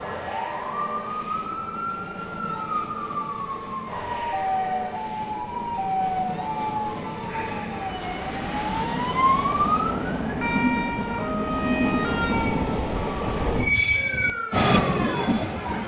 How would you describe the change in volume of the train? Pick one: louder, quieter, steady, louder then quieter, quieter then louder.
louder.